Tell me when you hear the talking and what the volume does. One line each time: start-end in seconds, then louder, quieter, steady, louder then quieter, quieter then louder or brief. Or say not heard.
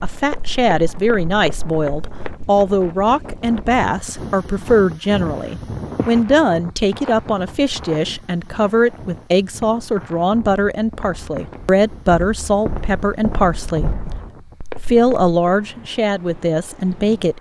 0.0-14.0 steady
14.8-17.3 brief.